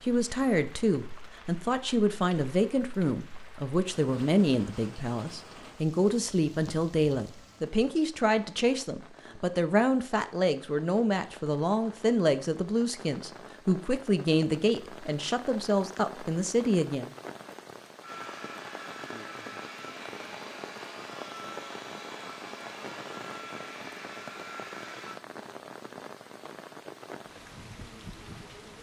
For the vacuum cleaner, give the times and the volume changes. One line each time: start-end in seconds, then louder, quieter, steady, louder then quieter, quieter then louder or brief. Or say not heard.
18.0-25.2 steady.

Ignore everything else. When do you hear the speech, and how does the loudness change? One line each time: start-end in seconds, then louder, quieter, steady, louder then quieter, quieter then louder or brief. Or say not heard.
0.0-17.1 steady.